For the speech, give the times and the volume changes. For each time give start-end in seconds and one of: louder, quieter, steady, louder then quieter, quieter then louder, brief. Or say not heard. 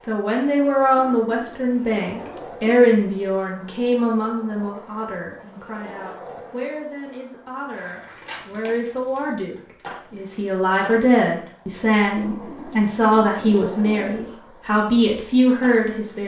0.1-16.2 quieter then louder.